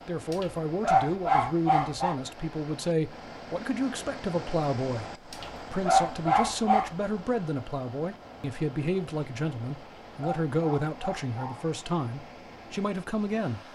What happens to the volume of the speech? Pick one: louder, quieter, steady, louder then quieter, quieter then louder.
steady.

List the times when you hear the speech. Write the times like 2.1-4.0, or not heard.
0.1-13.6.